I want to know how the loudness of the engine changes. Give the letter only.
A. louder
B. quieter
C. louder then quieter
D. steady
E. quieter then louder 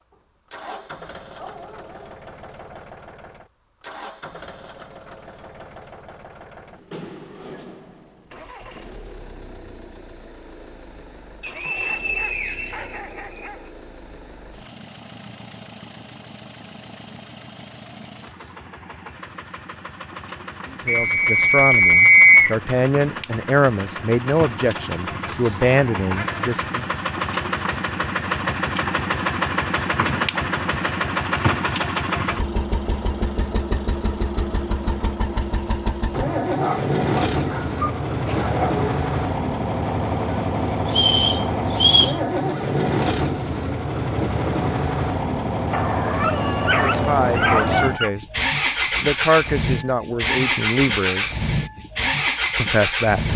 A.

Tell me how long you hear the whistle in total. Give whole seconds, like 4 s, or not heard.
5 s.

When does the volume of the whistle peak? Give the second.
22 s.